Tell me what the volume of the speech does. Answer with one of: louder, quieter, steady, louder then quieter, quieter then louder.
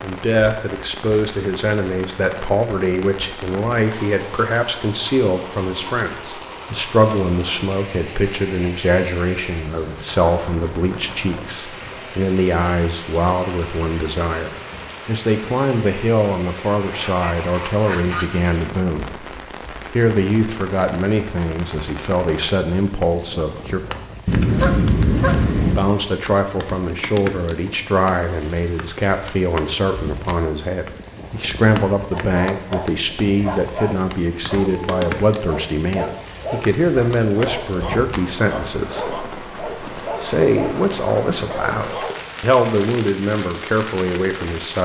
steady.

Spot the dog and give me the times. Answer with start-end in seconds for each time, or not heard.
32.1-42.4.